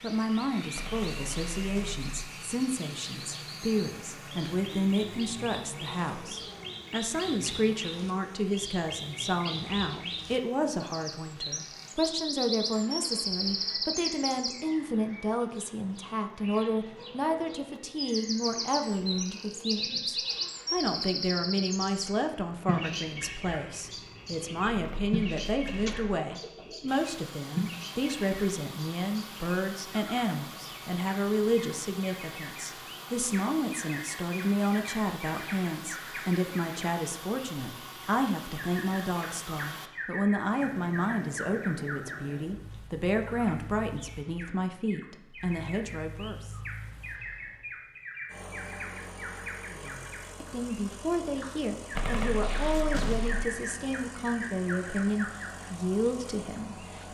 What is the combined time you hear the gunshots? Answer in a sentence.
The gunshots can be heard for 4 seconds in total.